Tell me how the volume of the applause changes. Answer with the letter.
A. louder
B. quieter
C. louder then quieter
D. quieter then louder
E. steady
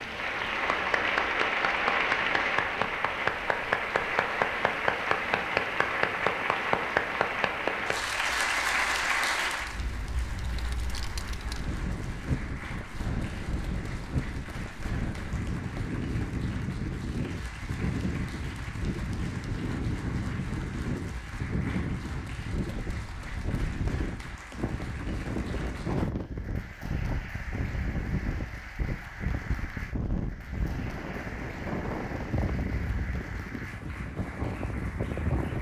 B.